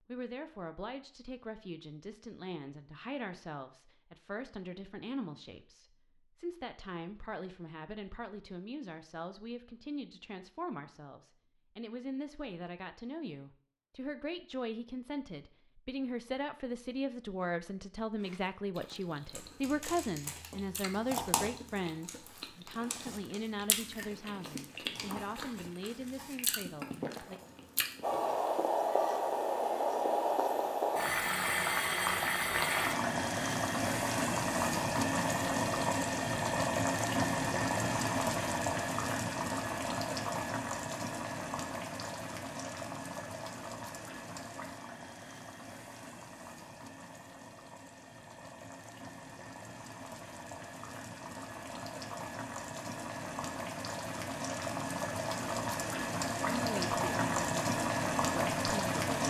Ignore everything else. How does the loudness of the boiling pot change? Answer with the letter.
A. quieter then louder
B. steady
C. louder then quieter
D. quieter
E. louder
A.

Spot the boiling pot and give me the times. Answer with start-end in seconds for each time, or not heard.
28.0-59.2.